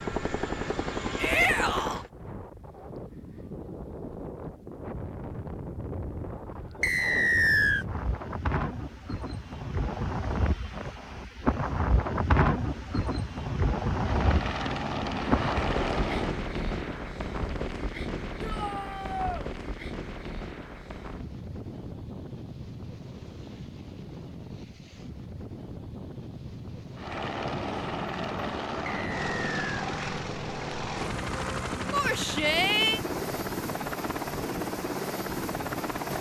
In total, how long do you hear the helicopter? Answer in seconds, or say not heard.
14 s.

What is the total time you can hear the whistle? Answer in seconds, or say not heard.
2 s.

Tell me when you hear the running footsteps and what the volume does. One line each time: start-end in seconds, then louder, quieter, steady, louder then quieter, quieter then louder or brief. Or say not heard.
not heard.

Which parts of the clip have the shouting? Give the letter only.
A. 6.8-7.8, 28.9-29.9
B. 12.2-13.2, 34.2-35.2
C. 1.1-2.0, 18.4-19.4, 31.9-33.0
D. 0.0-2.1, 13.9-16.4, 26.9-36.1
C.